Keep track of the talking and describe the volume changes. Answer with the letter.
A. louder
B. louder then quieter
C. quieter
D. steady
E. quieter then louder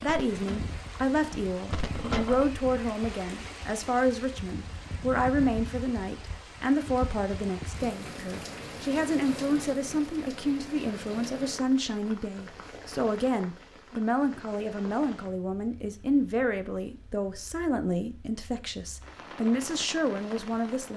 D.